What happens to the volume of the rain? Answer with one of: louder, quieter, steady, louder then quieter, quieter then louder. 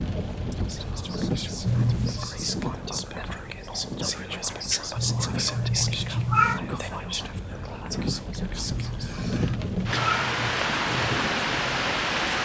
quieter then louder.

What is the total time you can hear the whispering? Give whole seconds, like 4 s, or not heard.
9 s.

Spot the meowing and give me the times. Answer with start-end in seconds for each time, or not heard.
1.6-2.3, 5.0-6.6, 8.7-10.6.